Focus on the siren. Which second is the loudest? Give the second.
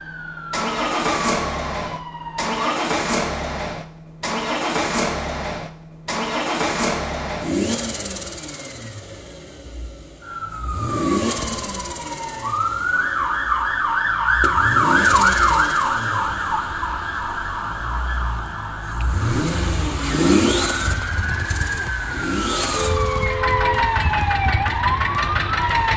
15 s.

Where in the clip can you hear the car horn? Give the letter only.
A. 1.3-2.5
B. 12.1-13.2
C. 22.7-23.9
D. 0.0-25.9
C.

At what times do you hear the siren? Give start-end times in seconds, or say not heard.
0.0-2.5, 10.2-25.9.